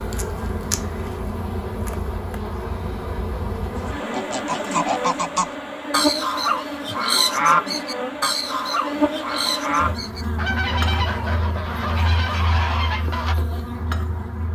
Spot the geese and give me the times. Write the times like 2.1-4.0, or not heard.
3.8-13.3.